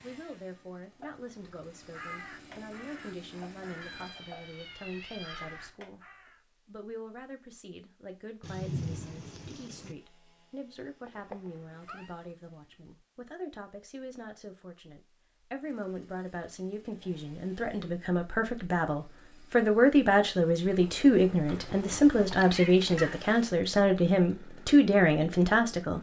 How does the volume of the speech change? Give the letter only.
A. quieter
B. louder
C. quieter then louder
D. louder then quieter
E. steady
B.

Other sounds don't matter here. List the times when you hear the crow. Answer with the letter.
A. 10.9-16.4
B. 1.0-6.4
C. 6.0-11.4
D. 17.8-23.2
B.